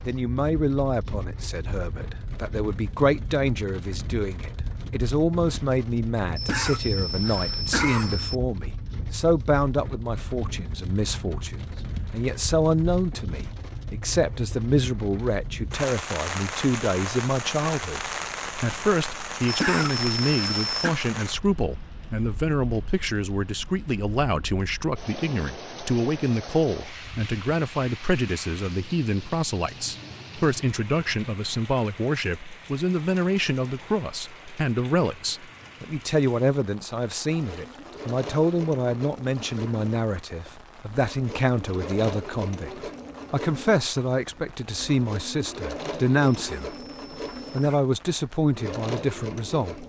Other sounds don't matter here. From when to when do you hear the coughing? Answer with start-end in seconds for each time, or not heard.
6.3-8.3, 19.4-20.9, 46.2-47.8.